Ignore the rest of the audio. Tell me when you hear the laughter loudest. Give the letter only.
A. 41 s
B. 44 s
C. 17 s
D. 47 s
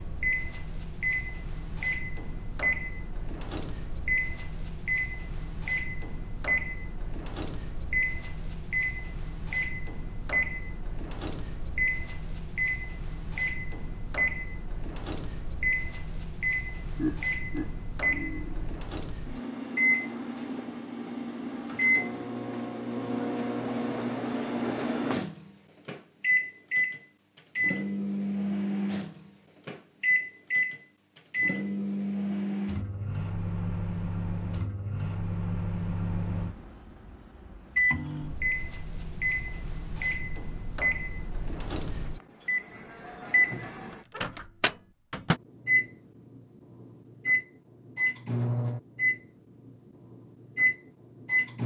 C.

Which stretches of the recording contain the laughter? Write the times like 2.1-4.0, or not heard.
16.9-18.7.